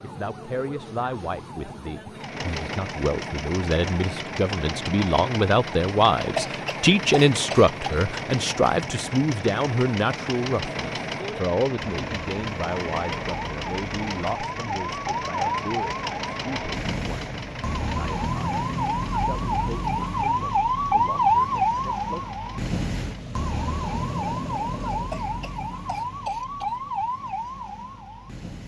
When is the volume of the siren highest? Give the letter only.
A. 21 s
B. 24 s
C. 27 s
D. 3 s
A.